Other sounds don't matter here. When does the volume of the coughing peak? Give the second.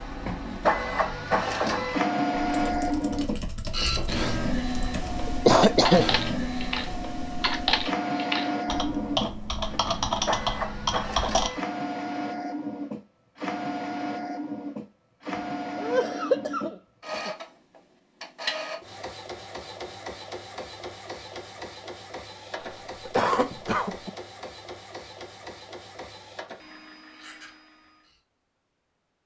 6 s.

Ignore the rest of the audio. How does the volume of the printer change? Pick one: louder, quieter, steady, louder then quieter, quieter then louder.
quieter.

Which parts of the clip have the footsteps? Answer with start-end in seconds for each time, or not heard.
not heard.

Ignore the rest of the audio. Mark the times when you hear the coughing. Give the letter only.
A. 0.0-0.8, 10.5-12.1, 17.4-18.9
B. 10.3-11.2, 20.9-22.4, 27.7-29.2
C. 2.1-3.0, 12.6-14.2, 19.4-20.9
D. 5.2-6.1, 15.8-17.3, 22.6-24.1
D.